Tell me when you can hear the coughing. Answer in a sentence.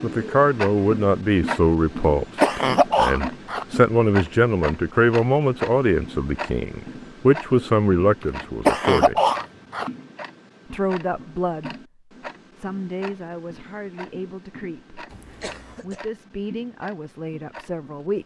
The coughing can be heard from 1.9 to 3.6 s, from 8.2 to 9.9 s and from 15.1 to 16.0 s.